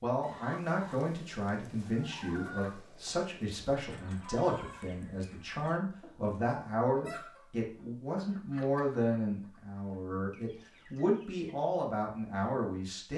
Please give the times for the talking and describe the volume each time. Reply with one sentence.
The talking can be heard from 0.0 to 13.1 s, at a steady volume.